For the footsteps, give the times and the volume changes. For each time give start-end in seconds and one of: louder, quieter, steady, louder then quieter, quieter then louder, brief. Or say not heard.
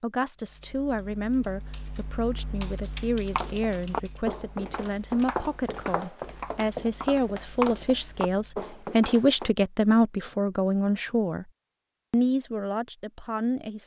3.3-9.5 steady.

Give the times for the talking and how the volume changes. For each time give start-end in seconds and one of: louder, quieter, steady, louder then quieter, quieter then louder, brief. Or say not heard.
0.0-11.4 louder
12.1-13.8 brief.